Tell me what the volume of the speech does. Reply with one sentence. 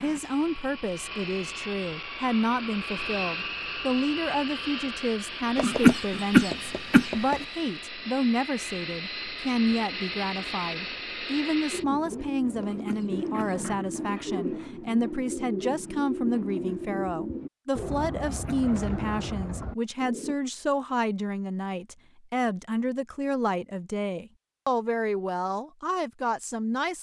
The loudness of the speech stays about the same.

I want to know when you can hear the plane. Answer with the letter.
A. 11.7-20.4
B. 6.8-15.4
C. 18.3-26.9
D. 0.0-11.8
D.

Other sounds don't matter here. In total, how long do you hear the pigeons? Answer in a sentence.
You can hear the pigeons for 9 seconds altogether.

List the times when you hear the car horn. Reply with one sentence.
You can't hear the car horn here.